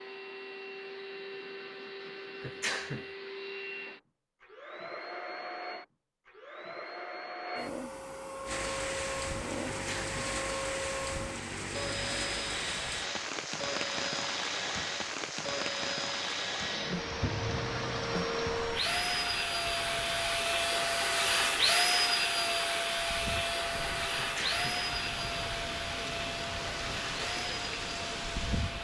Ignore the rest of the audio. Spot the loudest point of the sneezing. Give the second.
3 s.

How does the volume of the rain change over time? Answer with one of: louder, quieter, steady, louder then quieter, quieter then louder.
quieter then louder.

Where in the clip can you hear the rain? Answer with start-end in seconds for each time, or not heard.
8.4-28.8.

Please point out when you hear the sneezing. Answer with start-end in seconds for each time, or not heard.
2.4-3.0, 9.7-10.2, 24.1-24.8.